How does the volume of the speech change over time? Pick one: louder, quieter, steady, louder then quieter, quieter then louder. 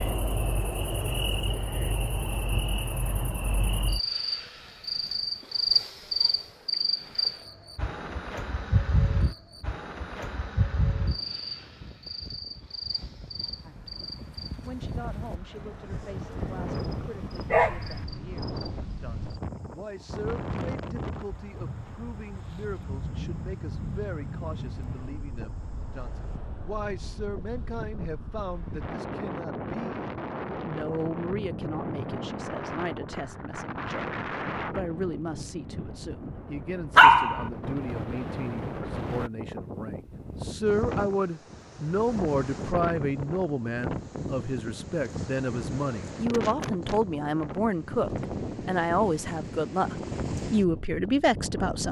louder.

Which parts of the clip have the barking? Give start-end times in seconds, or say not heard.
16.1-18.1, 37.0-37.5.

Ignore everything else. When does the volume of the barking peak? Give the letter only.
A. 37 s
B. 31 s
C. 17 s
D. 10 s
A.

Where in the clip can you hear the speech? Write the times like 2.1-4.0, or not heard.
13.6-51.8.